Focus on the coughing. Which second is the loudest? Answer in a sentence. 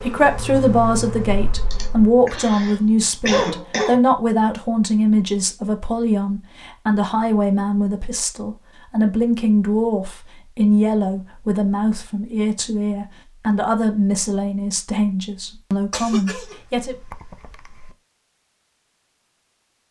The loudest moment of the coughing is at 3 seconds.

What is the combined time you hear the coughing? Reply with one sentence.
You can hear the coughing for 4 seconds altogether.